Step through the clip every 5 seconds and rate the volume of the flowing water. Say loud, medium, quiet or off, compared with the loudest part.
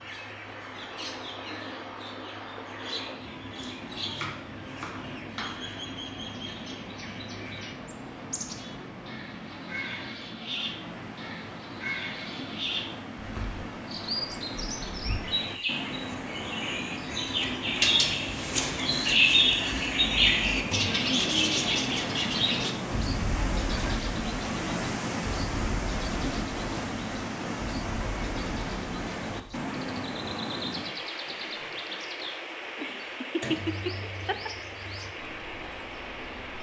medium, medium, medium, loud, loud, loud, medium, medium.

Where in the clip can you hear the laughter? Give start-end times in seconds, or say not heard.
32.8-34.5.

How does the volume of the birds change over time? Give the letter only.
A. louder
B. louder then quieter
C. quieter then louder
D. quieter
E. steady
B.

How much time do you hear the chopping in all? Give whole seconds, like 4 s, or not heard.
2 s.